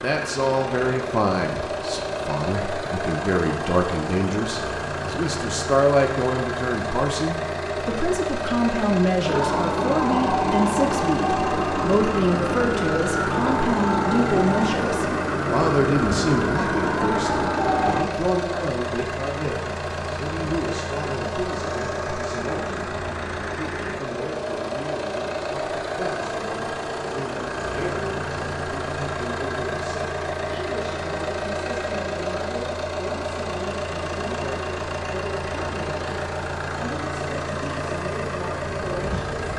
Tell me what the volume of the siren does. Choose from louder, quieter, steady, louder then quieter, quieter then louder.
steady.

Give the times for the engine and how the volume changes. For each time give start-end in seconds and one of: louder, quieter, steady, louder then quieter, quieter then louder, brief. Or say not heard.
0.0-39.5 steady.